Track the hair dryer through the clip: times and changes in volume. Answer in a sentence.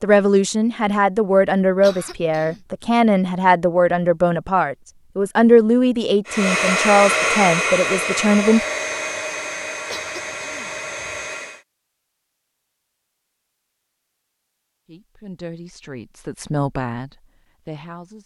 You can hear the hair dryer from 6.2 to 11.7 s, getting quieter.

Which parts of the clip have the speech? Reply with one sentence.
You can hear the speech from 0.0 to 8.6 s and from 14.8 to 18.2 s.